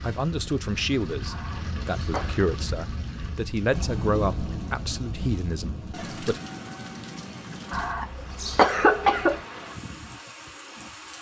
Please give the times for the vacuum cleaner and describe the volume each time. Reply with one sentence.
You can't hear the vacuum cleaner here.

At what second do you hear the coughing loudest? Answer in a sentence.
The loudest moment of the coughing is at 9 seconds.